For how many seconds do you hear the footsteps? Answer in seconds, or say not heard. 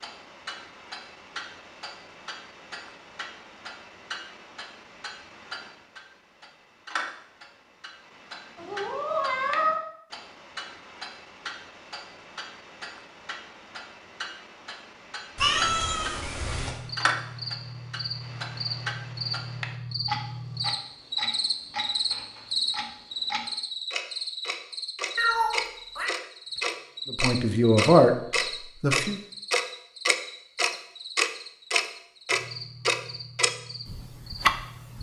not heard.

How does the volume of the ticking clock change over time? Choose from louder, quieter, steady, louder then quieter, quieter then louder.
louder.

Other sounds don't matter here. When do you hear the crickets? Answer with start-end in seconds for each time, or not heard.
16.4-34.9.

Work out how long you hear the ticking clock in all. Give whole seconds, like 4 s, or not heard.
35 s.